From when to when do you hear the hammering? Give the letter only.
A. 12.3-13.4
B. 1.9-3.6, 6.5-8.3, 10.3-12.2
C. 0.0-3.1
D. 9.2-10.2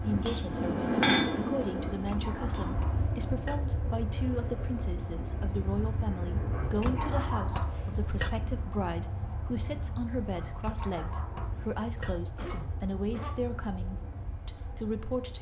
C.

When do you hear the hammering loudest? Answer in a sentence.
The loudest moment of the hammering is at 1 second.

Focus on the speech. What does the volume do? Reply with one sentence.
The loudness of the speech stays about the same.